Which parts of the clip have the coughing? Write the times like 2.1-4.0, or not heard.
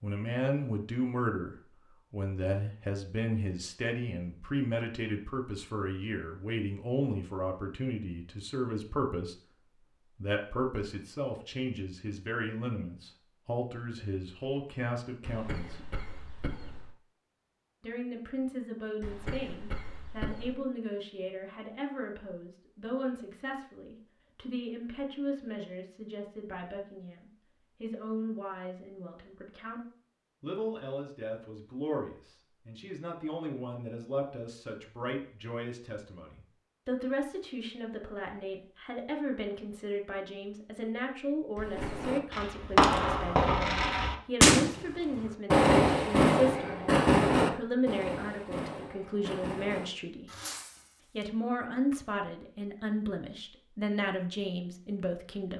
15.2-16.9, 19.0-20.6, 41.5-42.1.